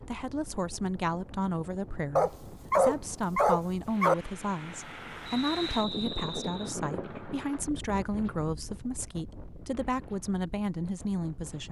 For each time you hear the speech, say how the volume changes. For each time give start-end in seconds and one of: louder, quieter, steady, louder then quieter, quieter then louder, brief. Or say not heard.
0.0-11.6 steady.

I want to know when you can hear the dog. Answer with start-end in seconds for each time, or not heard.
2.1-4.2.